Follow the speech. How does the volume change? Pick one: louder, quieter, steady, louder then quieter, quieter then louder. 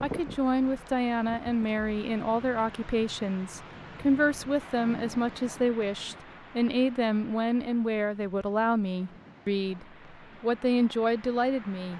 steady.